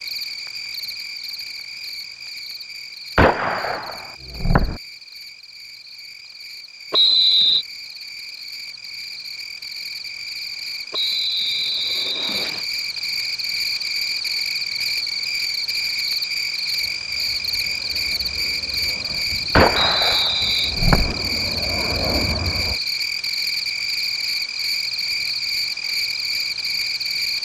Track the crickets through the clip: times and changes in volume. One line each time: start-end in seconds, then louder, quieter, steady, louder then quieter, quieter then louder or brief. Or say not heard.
0.0-27.4 louder.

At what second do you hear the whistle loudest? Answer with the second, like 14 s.
7 s.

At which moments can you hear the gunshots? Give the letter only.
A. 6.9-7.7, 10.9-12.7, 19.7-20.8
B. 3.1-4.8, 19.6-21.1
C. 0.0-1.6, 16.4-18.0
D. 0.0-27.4
B.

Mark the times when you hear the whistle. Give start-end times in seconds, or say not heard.
6.9-7.7, 10.9-12.7, 19.7-20.8.